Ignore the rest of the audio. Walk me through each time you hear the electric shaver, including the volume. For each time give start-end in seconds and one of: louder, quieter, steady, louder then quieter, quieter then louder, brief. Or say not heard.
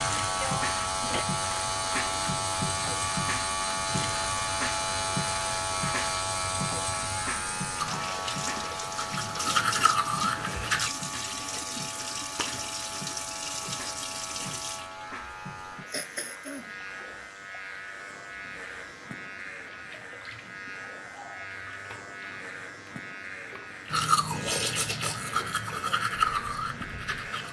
0.0-27.4 quieter.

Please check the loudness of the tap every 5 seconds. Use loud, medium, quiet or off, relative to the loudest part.
loud, loud, loud, quiet, quiet, medium.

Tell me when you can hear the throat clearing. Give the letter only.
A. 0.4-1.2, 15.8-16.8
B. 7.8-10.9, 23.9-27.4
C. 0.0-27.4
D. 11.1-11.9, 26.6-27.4
A.